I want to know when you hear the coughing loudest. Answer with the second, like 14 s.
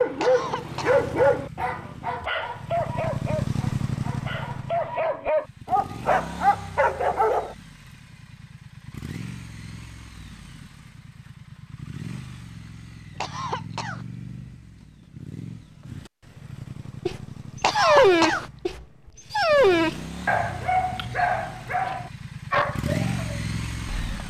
18 s.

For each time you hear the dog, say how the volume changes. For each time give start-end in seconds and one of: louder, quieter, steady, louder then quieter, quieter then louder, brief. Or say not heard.
0.0-7.5 quieter then louder
17.1-24.2 quieter.